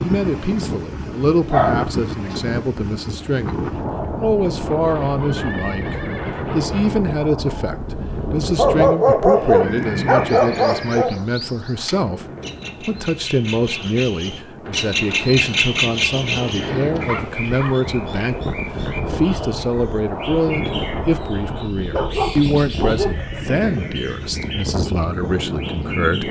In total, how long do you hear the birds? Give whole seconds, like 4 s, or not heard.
16 s.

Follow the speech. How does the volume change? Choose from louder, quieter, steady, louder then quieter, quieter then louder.
steady.